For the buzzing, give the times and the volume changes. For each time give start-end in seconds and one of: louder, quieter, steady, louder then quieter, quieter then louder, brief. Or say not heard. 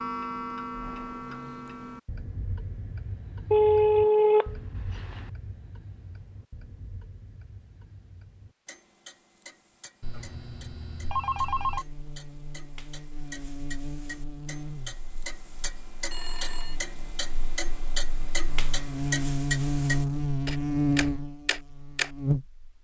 11.4-22.6 quieter then louder.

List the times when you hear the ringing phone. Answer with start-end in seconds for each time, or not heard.
3.5-5.2, 10.0-11.8, 16.1-16.8.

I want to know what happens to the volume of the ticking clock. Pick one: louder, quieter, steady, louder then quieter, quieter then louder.
quieter then louder.